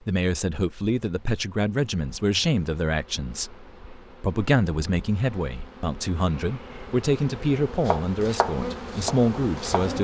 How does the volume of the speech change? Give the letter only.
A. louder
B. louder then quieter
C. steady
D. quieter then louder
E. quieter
C.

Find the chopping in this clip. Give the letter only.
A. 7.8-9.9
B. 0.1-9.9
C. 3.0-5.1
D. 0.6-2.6
A.